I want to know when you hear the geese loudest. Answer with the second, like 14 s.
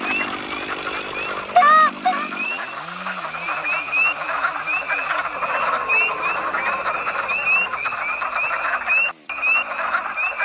2 s.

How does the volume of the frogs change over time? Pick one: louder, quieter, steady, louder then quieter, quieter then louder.
louder.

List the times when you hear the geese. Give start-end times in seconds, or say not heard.
0.1-2.3, 5.3-7.8.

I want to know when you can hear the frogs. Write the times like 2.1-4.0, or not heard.
0.0-10.4.